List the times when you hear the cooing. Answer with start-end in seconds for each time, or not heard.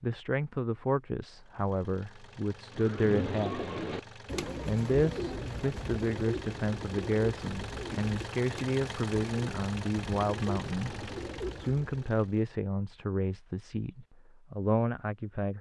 2.7-12.1.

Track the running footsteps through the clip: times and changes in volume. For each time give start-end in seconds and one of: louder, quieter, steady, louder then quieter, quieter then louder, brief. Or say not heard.
not heard.